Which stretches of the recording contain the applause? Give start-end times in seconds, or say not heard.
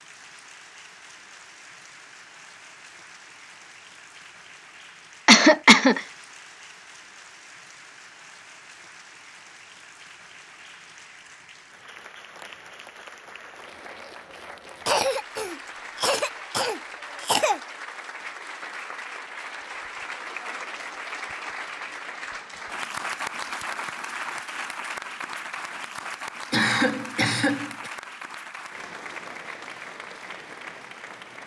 0.0-31.4.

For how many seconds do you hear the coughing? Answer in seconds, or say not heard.
5 s.